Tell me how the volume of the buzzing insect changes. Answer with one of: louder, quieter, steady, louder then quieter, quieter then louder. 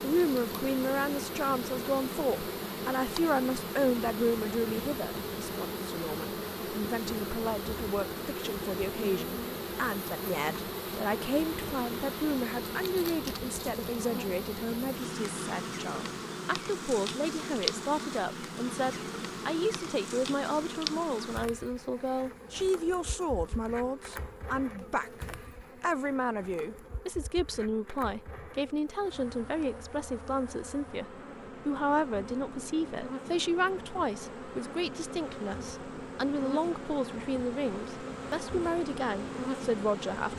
quieter then louder.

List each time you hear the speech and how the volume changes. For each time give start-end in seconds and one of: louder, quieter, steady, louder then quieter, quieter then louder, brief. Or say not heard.
0.0-40.3 steady.